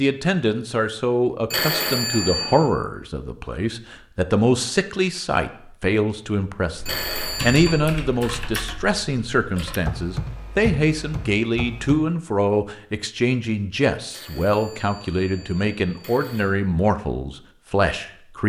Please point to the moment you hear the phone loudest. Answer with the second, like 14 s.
2 s.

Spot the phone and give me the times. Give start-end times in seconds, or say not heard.
1.5-2.6, 6.8-7.8, 14.1-16.5.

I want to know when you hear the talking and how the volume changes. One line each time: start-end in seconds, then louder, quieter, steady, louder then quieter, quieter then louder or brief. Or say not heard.
0.0-18.4 steady.